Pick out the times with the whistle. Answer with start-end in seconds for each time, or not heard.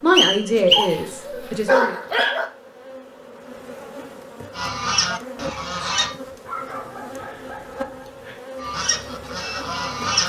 0.1-0.9.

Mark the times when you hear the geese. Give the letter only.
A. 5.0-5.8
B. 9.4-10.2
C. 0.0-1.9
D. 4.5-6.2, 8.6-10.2
D.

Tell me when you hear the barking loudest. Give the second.
2 s.